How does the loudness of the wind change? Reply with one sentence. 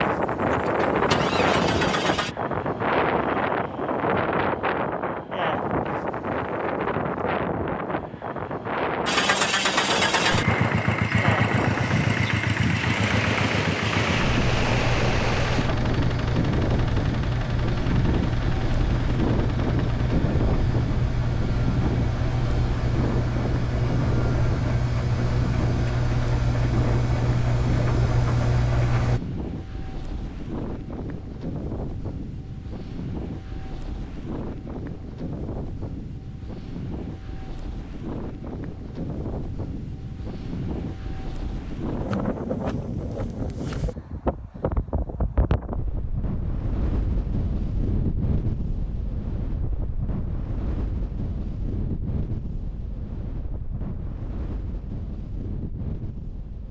The volume of the wind goes down.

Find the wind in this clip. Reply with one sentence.
The wind can be heard from 0.0 to 56.6 s.